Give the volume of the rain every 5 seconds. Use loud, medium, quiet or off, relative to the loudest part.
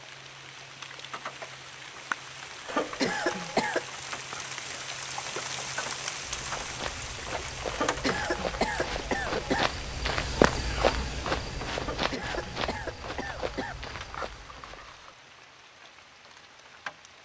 loud, loud, medium, medium.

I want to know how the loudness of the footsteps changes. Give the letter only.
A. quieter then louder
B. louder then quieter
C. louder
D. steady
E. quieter
B.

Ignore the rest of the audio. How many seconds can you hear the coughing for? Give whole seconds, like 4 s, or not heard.
5 s.